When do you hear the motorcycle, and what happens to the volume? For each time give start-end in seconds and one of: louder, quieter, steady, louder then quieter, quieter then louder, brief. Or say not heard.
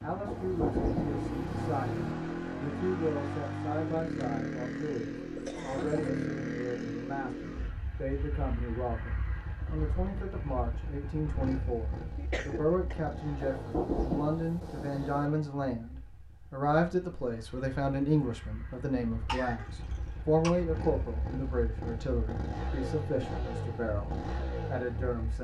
0.0-25.3 quieter then louder.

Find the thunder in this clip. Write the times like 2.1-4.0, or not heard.
0.2-2.1, 13.4-15.3.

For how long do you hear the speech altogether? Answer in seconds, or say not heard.
25 s.